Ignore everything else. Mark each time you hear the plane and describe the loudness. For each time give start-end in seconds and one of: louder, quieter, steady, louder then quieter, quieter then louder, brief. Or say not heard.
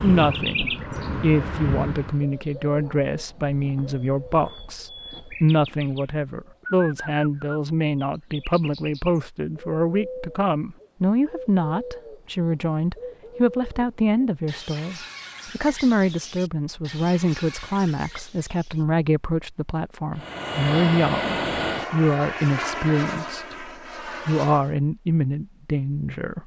0.0-2.2 brief
20.1-24.8 quieter.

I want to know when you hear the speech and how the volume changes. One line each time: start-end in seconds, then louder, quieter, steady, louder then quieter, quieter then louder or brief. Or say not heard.
0.0-26.4 steady.